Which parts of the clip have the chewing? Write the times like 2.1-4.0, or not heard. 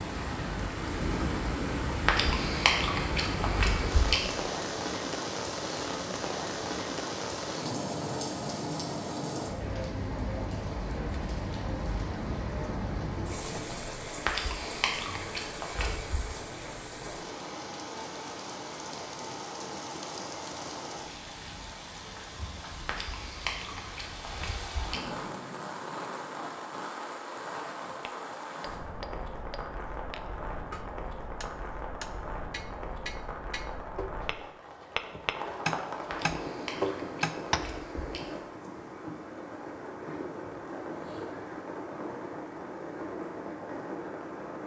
2.0-4.4, 14.2-16.2, 22.8-25.2, 36.0-38.5.